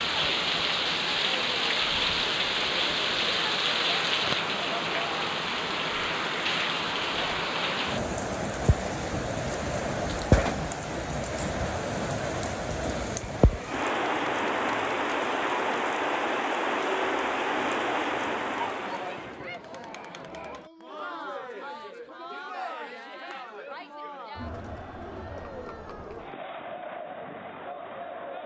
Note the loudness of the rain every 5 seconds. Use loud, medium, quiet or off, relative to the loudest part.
loud, loud, loud, loud, off, off.